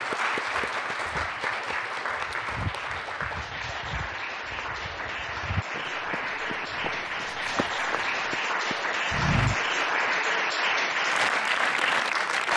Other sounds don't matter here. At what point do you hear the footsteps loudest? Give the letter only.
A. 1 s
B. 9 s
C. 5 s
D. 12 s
B.